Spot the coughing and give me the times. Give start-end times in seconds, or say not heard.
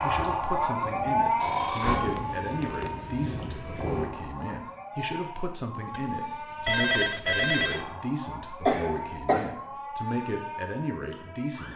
8.7-9.4.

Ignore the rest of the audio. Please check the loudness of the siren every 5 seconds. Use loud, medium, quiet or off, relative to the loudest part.
loud, medium, medium.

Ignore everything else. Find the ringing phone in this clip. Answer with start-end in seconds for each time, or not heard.
1.4-3.0, 5.9-8.0.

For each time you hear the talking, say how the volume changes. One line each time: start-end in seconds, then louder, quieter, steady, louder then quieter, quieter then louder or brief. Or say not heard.
0.0-11.7 steady.